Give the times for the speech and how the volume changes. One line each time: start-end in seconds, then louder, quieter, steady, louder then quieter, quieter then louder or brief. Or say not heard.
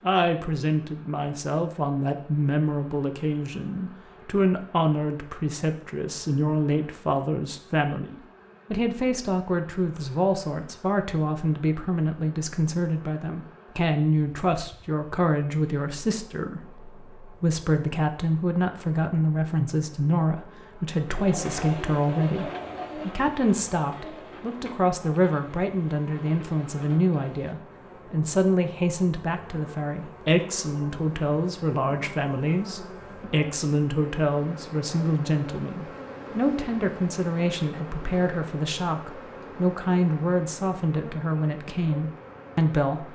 0.0-43.1 steady.